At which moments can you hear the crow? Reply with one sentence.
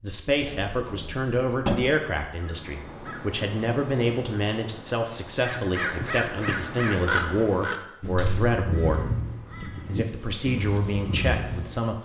The crow can be heard from 2.3 to 11.7 s.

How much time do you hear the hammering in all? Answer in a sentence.
You can't hear the hammering here.